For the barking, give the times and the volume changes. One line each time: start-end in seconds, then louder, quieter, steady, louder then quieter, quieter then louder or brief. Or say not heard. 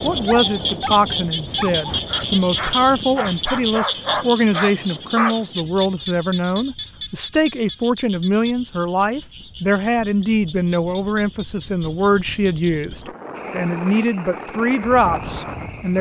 0.1-5.4 louder.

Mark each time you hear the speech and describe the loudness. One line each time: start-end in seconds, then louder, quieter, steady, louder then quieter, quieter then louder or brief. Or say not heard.
0.0-15.9 steady.